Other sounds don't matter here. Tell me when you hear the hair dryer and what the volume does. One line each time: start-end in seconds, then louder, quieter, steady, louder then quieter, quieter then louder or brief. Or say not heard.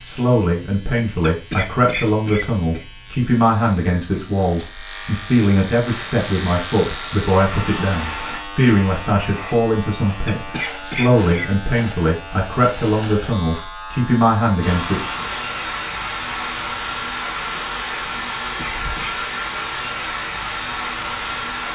5.8-8.4 brief
14.6-21.7 steady.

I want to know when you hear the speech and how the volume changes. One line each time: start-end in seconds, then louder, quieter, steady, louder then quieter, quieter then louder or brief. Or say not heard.
0.0-15.0 steady.